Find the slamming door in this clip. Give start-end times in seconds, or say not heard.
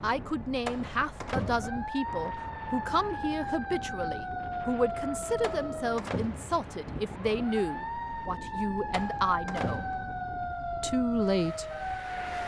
0.7-1.8, 5.4-6.6, 8.9-10.2.